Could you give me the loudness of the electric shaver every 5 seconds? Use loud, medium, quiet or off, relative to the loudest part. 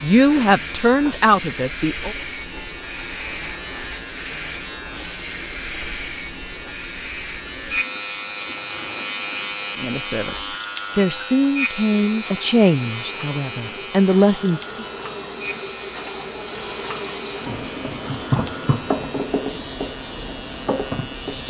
loud, loud, loud, medium, loud.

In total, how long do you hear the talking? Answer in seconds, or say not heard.
7 s.